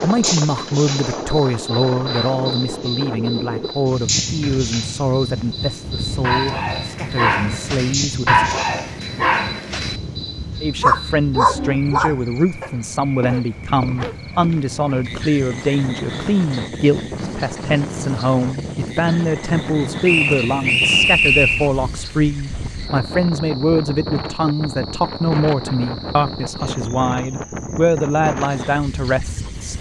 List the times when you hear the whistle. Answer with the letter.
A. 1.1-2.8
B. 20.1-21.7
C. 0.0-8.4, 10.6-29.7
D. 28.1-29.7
B.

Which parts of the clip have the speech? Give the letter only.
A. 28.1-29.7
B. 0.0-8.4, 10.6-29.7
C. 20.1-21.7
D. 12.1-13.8
B.